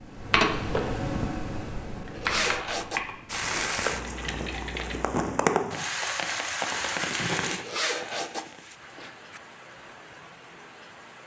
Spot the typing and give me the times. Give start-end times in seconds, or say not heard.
0.0-5.2.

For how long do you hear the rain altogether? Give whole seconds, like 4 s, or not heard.
8 s.